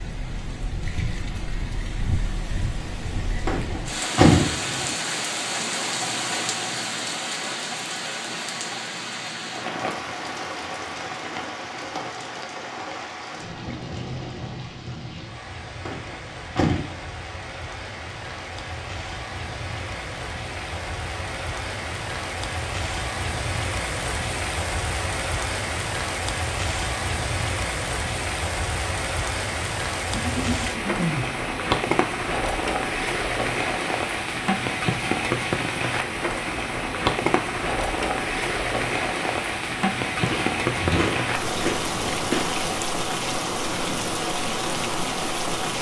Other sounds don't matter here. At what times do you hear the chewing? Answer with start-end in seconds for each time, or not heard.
40.1-42.8.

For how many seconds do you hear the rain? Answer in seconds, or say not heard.
46 s.